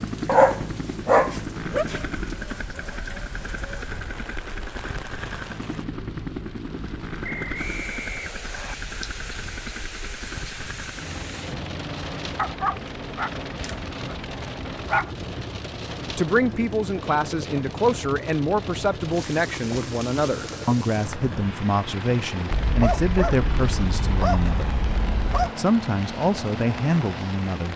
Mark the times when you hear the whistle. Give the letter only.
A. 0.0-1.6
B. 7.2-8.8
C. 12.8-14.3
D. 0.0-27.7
B.